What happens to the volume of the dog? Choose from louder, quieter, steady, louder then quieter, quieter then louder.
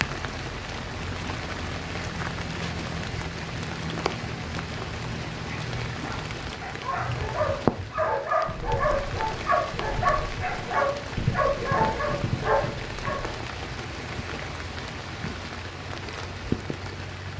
louder.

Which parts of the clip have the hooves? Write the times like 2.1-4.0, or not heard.
6.9-13.3.